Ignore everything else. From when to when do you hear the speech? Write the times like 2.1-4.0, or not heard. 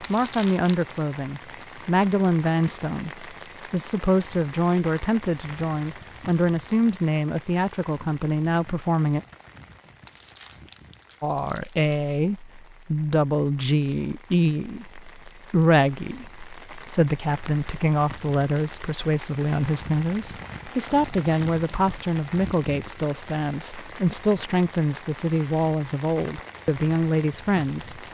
0.0-9.2, 11.2-28.0.